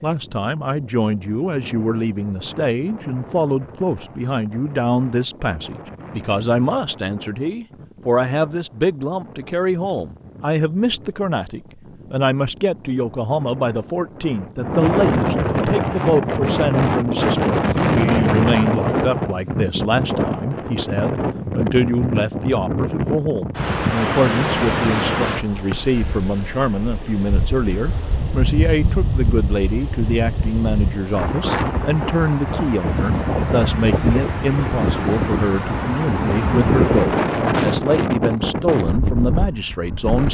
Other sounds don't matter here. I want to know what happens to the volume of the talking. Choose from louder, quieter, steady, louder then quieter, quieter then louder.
steady.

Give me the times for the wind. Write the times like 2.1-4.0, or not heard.
0.0-40.2.